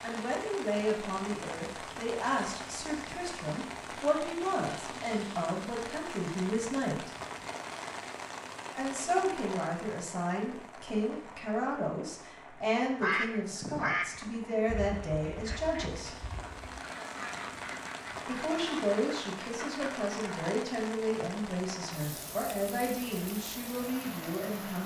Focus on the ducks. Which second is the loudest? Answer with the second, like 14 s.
13 s.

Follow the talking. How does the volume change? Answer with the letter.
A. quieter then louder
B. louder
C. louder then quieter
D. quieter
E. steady
E.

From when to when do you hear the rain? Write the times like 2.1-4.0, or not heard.
0.0-24.8.